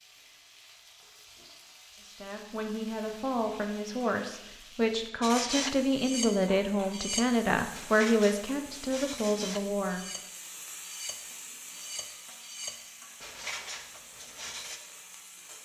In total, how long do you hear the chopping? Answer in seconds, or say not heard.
not heard.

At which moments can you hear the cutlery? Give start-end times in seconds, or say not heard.
5.2-14.8.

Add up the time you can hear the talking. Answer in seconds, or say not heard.
8 s.